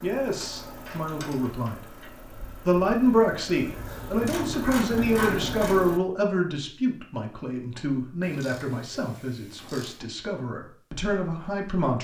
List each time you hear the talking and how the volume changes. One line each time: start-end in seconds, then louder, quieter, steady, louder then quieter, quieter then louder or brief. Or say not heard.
0.0-1.9 brief
2.6-11.9 quieter.